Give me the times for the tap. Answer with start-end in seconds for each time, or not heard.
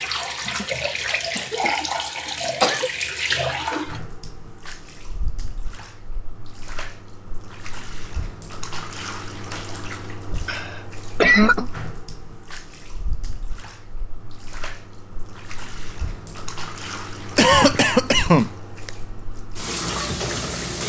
0.0-20.8.